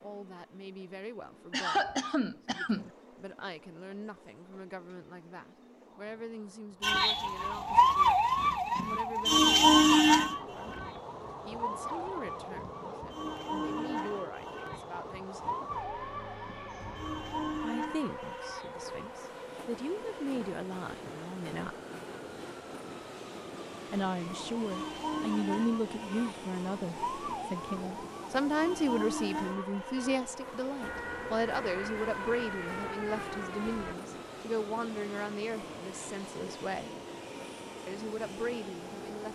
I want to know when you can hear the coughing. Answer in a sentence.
The coughing can be heard from 1.5 to 2.9 s.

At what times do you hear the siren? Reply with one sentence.
You can hear the siren from 6.8 to 19.2 s and from 24.2 to 34.0 s.